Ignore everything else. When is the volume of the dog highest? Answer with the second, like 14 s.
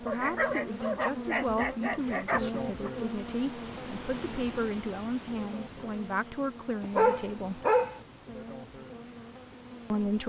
7 s.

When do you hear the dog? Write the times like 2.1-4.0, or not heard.
0.1-2.9, 6.8-8.0.